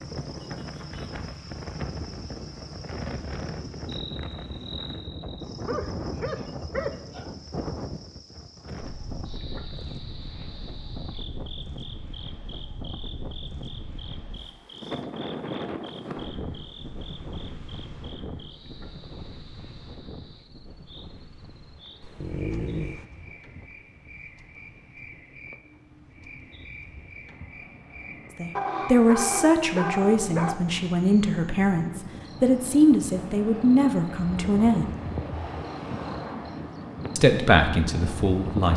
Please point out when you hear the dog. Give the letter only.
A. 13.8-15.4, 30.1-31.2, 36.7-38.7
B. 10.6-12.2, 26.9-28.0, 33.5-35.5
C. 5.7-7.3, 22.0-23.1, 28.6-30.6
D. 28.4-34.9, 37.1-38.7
C.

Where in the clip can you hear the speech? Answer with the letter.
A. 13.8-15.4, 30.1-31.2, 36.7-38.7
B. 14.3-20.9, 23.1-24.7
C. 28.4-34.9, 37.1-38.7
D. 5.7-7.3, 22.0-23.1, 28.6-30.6
C.